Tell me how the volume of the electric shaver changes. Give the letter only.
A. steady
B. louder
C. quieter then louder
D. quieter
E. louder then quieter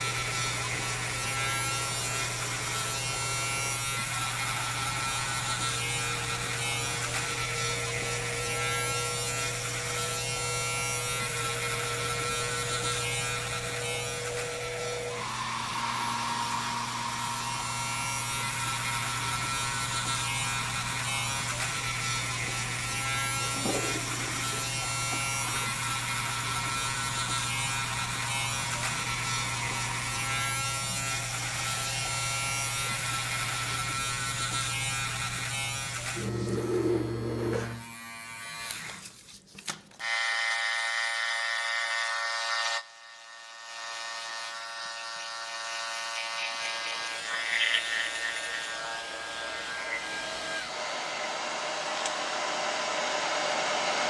A.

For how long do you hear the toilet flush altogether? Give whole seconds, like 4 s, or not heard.
2 s.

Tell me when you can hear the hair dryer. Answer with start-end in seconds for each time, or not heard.
0.0-33.8, 46.5-54.0.